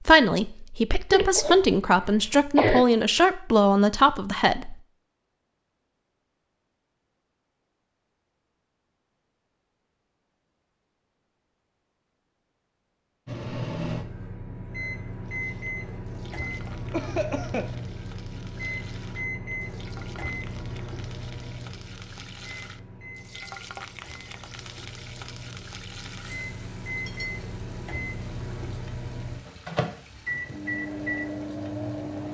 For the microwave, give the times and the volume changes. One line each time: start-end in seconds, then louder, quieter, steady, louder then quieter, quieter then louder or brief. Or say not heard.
13.2-32.2 quieter then louder.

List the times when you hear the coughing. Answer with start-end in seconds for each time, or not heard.
1.1-2.9, 16.9-17.8.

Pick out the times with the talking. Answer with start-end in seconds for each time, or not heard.
0.0-4.8.